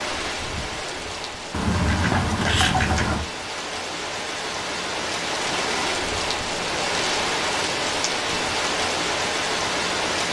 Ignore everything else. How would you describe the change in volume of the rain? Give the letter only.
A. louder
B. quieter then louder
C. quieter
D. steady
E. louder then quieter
A.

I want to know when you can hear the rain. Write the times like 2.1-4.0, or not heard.
0.0-10.2.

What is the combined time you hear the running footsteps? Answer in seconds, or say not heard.
not heard.